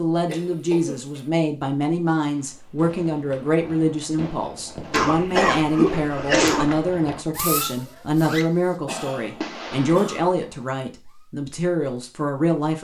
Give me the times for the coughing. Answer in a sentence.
You can hear the coughing from 0.2 to 1.3 s, from 4.9 to 6.7 s and from 8.8 to 10.2 s.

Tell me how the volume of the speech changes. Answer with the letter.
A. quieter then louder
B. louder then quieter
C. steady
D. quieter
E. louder
C.